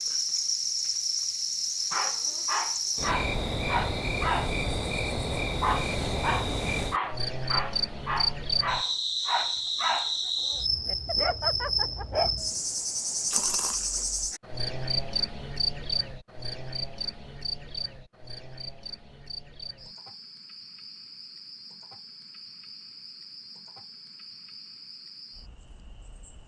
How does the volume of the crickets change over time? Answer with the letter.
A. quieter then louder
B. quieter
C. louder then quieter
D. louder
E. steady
B.